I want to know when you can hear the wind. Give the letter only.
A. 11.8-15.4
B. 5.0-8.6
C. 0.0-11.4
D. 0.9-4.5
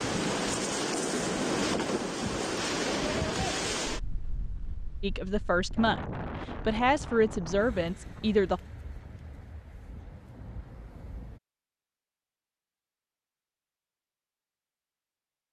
C.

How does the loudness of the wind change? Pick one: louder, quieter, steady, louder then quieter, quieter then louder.
quieter.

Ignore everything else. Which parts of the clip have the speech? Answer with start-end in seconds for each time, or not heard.
5.0-8.6.